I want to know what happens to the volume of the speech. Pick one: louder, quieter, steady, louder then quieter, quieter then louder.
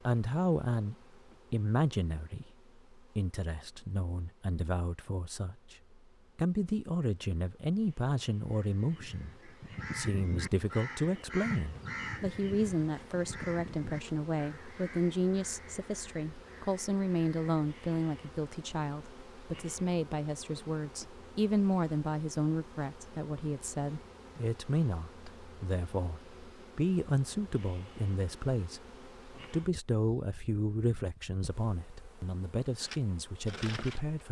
steady.